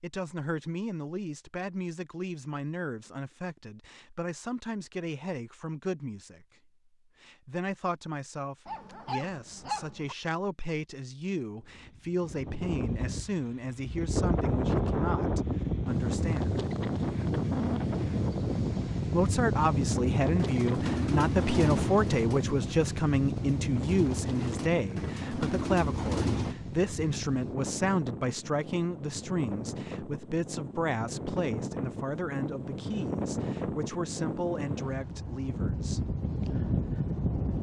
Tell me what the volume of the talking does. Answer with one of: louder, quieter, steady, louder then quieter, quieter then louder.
louder then quieter.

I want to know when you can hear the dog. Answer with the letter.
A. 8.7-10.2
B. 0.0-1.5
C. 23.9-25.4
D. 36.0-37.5
A.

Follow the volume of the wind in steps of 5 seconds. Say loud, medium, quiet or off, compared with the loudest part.
off, off, loud, loud, loud, medium, medium, loud.